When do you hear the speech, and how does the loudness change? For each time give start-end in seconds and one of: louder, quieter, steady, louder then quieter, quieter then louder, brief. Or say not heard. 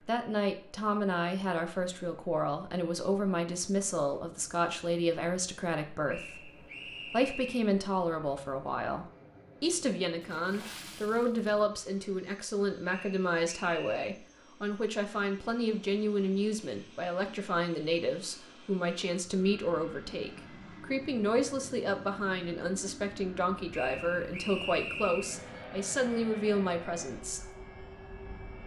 0.1-27.5 steady.